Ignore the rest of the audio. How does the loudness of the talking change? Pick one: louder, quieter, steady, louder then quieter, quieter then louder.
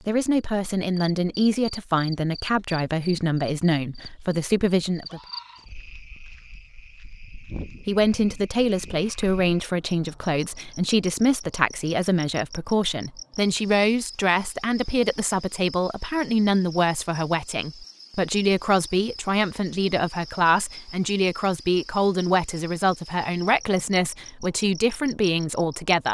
steady.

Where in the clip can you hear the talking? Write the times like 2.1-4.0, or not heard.
0.1-5.2, 7.8-26.0.